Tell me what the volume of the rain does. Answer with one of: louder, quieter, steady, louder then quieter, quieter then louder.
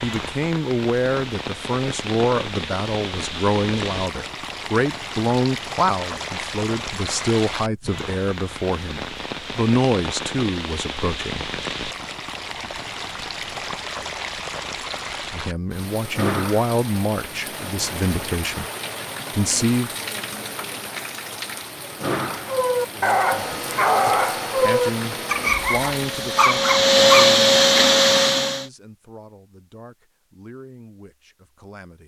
steady.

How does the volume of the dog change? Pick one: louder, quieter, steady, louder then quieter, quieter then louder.
steady.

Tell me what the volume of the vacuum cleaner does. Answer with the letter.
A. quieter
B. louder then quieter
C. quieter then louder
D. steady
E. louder
E.